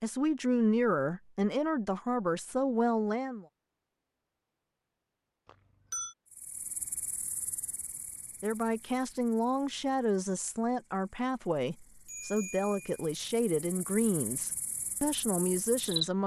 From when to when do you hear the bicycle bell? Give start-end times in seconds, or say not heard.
5.5-6.2, 12.1-13.0.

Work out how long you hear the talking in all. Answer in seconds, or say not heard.
11 s.